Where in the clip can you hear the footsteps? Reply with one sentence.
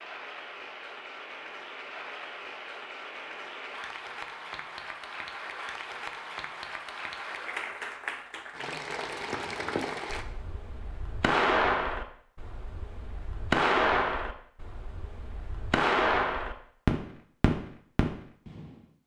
You can't hear the footsteps here.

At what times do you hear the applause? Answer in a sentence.
You can hear the applause from 0.0 to 10.2 s.